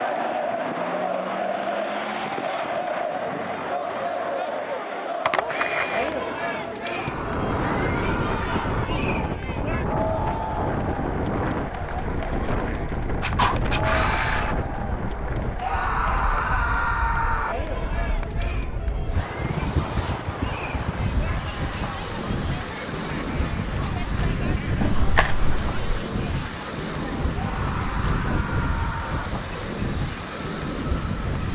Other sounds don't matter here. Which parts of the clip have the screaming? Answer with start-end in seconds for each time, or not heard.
6.9-8.9, 15.6-17.6, 27.4-29.3.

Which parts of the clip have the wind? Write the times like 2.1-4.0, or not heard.
7.0-31.5.